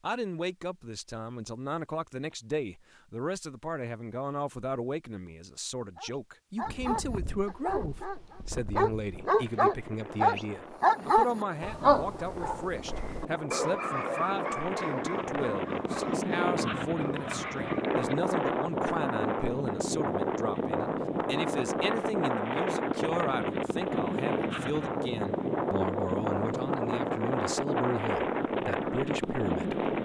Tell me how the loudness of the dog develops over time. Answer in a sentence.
The volume of the dog goes up, then down.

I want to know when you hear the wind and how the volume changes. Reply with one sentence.
You can hear the wind from 6.6 to 30.0 s, getting louder.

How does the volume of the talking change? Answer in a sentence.
The loudness of the talking stays about the same.